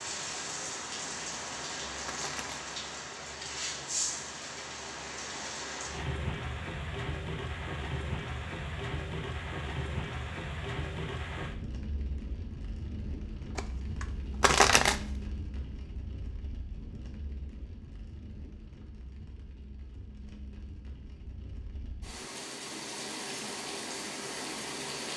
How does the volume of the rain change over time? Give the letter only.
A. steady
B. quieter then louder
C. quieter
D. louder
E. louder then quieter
B.